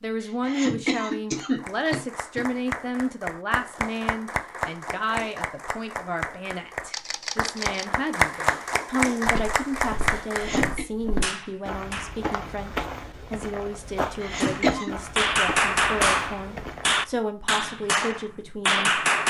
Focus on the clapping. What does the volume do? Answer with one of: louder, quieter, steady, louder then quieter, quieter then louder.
louder.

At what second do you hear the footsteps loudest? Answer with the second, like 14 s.
15 s.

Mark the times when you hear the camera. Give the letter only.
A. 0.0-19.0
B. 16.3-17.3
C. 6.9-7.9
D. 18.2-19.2
C.